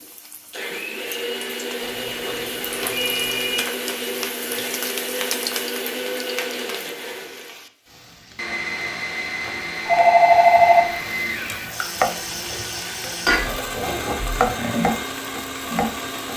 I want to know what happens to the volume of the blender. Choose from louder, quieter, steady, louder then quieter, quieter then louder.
steady.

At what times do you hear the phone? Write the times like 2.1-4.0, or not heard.
1.8-3.6, 9.8-11.0.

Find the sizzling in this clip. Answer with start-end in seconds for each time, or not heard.
0.0-16.3.